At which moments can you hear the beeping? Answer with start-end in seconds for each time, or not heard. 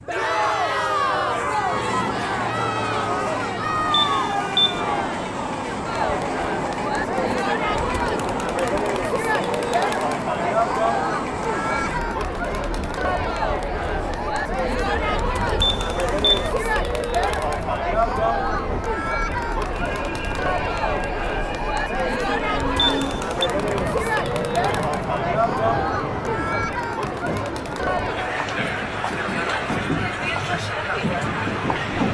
3.9-4.8, 15.6-16.5, 22.8-23.4.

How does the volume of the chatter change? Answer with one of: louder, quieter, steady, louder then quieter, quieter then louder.
steady.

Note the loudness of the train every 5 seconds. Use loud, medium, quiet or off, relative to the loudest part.
loud, loud, loud, medium, loud, loud, loud.